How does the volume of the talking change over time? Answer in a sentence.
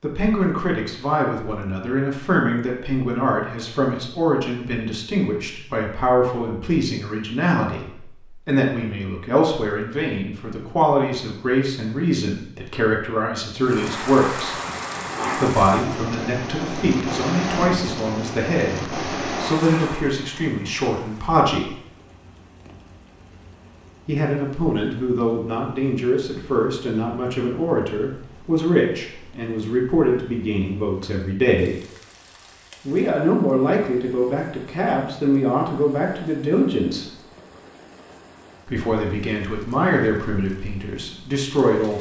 The volume of the talking stays about the same.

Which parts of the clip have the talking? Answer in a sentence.
The talking can be heard from 0.0 to 14.6 s, from 15.3 to 21.8 s, from 24.1 to 31.8 s, from 32.9 to 37.1 s and from 38.6 to 41.9 s.